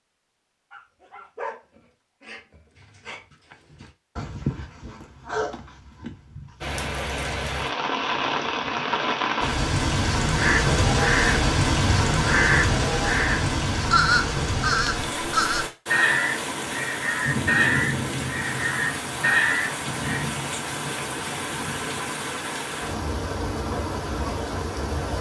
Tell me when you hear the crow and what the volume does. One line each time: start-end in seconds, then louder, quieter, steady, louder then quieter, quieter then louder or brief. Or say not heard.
10.3-20.2 steady.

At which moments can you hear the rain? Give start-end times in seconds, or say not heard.
6.6-25.1.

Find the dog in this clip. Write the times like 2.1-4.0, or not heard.
0.7-6.8.